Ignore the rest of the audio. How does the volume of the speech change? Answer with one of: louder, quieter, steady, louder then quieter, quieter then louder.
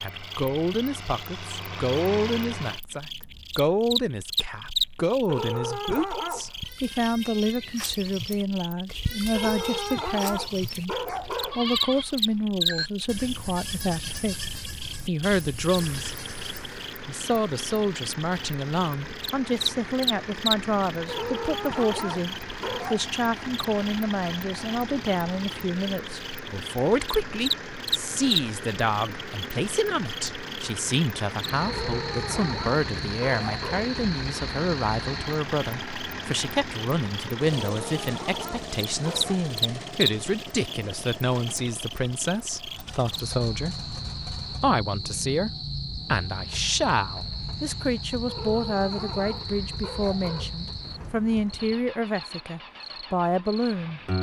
steady.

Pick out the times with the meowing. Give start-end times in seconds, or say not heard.
not heard.